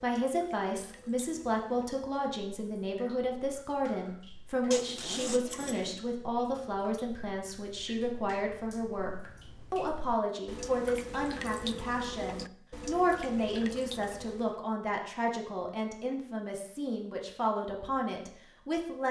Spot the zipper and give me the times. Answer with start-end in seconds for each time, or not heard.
4.7-6.0.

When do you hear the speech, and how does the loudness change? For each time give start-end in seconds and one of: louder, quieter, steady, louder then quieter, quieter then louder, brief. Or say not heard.
0.0-19.0 steady.